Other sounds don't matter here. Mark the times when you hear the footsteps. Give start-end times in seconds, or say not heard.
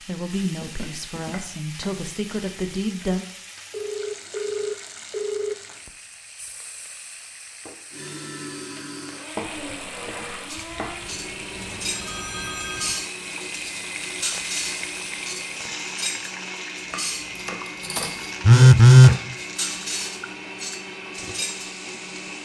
not heard.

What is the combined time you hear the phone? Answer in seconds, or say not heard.
5 s.